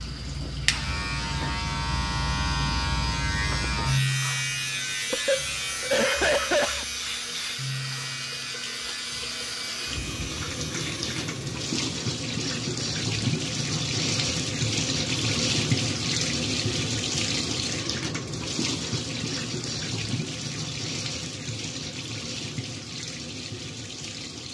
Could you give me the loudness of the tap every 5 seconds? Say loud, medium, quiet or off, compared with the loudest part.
quiet, medium, loud, loud, medium.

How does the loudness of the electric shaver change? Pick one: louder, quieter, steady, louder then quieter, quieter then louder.
quieter.